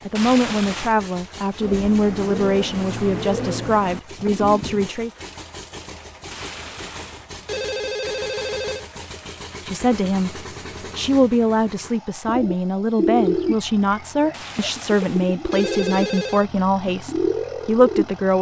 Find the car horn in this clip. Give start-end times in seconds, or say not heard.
not heard.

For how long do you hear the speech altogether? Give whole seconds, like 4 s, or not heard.
14 s.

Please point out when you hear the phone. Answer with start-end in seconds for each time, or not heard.
0.1-0.9, 6.3-8.8, 14.3-16.5.